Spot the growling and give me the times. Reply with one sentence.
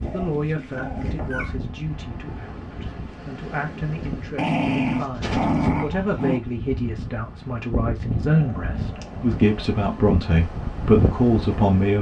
You can hear the growling from 0.0 to 1.6 s, from 4.3 to 6.4 s and from 8.2 to 9.6 s.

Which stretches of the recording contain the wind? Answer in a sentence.
The wind can be heard from 0.0 to 11.9 s.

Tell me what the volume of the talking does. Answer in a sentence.
The loudness of the talking goes up.